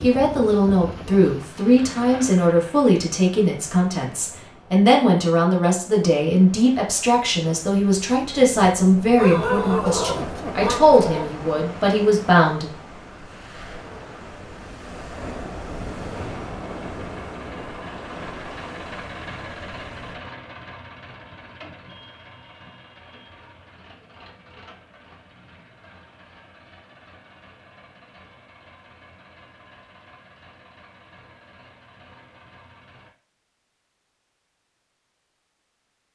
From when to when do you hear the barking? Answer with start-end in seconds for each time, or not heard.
9.2-11.3.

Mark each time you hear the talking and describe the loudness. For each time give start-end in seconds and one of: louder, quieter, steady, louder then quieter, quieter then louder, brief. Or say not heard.
0.0-12.7 steady.